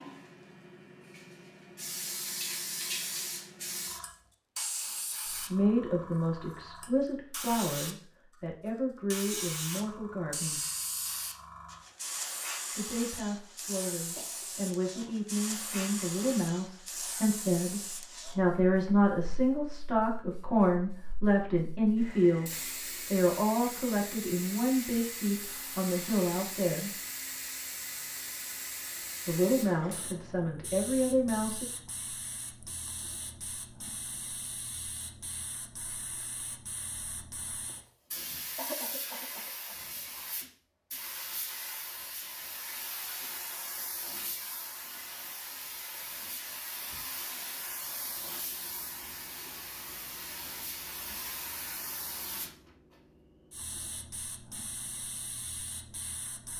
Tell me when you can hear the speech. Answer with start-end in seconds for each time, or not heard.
5.5-10.6, 12.8-26.9, 29.2-31.6.